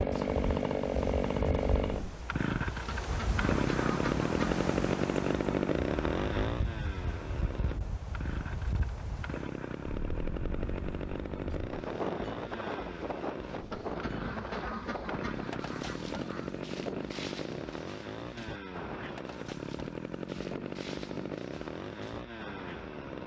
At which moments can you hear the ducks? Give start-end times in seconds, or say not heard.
2.9-4.7, 13.7-16.6.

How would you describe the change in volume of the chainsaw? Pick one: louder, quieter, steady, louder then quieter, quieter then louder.
quieter.